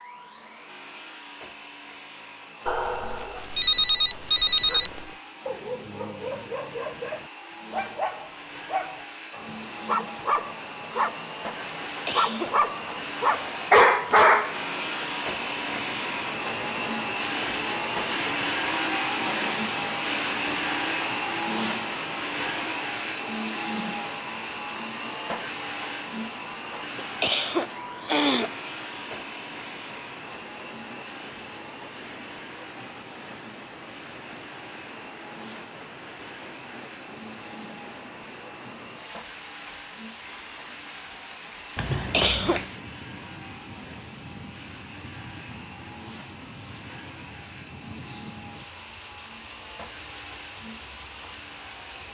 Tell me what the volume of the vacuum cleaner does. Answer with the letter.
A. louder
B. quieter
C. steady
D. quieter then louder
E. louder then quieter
E.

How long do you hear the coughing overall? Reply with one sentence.
The coughing can be heard for 3 seconds in total.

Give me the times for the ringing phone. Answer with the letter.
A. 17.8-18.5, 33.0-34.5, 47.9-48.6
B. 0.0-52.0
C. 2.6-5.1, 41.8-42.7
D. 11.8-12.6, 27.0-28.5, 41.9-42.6
C.